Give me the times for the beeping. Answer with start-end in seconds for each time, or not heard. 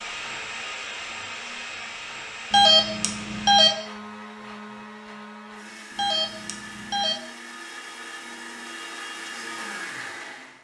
2.5-3.7, 6.0-7.2.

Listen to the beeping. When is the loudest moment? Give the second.
3 s.